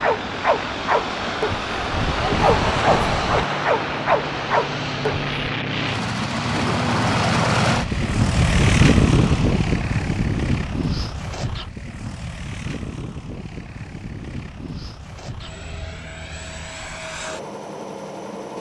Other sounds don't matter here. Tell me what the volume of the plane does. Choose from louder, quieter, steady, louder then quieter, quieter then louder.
louder then quieter.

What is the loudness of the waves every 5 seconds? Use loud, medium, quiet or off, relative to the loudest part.
loud, medium, off, off.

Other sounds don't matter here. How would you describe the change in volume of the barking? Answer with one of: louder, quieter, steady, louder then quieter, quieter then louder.
quieter then louder.